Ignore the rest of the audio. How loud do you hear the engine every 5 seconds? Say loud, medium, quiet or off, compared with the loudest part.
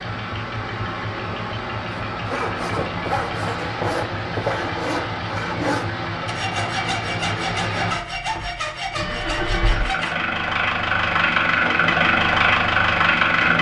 medium, medium, loud.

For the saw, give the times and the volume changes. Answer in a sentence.
You can hear the saw from 2.1 to 10.2 s, at a steady volume.